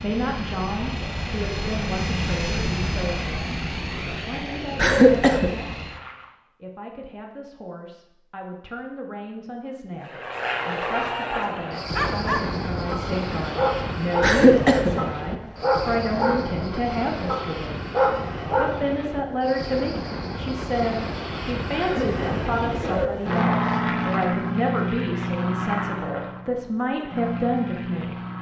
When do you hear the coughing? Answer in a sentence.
You can hear the coughing from 4.8 to 5.5 s, from 14.2 to 15.0 s and from 21.8 to 23.1 s.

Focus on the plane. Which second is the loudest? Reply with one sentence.
The loudest moment of the plane is at 24 seconds.